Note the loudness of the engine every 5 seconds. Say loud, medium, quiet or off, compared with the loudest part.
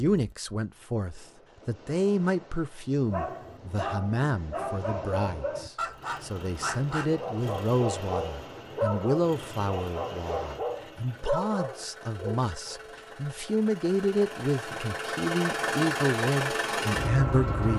off, quiet, quiet, loud.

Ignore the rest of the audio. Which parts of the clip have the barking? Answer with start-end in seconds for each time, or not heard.
3.0-12.8.